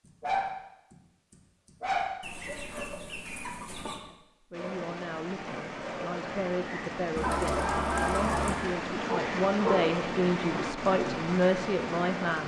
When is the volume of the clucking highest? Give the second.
8 s.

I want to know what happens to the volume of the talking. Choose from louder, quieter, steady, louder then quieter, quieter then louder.
louder.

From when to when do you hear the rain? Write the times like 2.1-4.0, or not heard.
4.5-12.4.